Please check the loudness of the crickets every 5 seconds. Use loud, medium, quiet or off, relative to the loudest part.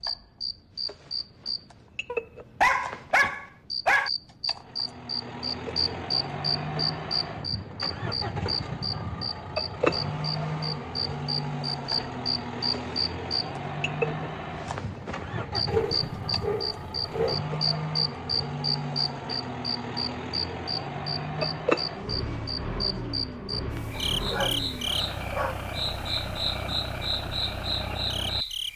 medium, loud, loud, loud, loud, loud.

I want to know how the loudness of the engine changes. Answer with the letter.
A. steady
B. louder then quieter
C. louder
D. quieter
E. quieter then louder
A.